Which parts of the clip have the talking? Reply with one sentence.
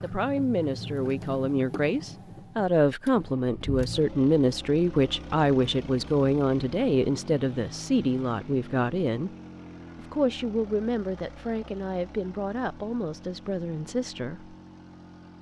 You can hear the talking from 0.0 to 9.3 s and from 9.9 to 14.6 s.